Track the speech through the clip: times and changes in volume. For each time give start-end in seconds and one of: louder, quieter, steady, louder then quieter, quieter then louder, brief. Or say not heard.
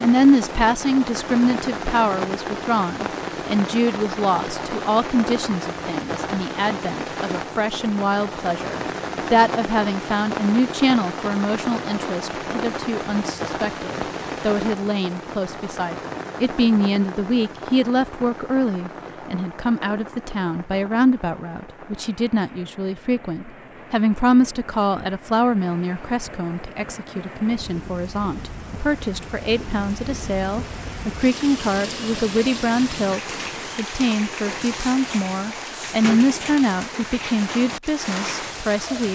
0.0-39.1 steady.